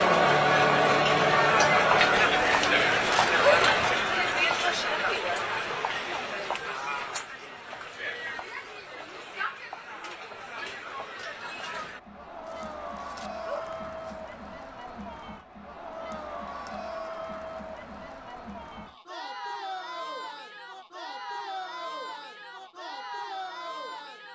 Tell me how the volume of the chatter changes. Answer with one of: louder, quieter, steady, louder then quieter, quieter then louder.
quieter.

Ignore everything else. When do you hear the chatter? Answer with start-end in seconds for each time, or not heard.
0.0-24.3.